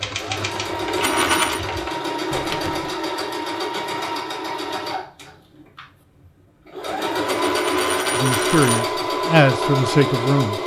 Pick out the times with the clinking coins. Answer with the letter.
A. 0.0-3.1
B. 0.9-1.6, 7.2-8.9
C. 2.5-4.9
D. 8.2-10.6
B.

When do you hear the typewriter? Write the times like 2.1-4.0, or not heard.
0.0-3.1.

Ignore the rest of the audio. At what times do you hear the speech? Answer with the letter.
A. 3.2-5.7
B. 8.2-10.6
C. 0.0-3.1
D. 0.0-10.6
B.